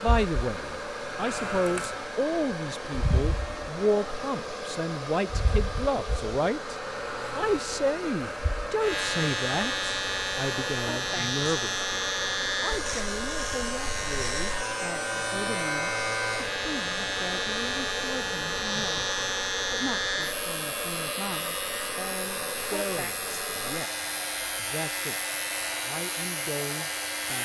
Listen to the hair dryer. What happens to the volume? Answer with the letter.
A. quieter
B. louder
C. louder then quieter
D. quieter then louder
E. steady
E.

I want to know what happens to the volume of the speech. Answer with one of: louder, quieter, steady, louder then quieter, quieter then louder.
quieter.